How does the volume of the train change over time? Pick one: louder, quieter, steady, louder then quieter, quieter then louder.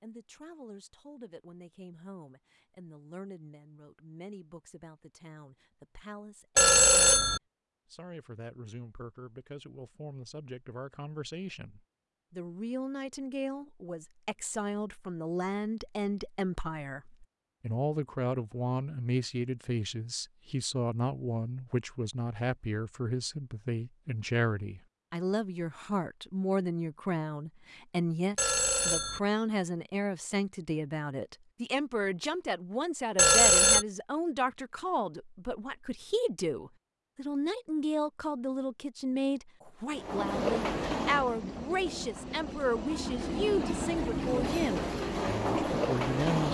quieter then louder.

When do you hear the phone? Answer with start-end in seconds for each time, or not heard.
6.5-7.4, 28.4-29.2, 33.1-33.9.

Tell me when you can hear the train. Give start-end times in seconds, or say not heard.
39.9-46.4.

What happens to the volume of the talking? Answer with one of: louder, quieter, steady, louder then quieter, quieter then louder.
louder.